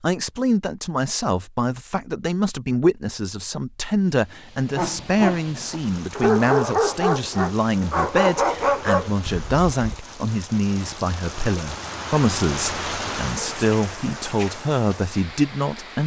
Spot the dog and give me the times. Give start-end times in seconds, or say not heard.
4.8-10.0.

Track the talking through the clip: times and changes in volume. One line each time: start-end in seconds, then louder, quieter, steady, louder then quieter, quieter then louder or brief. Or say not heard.
0.0-16.0 steady.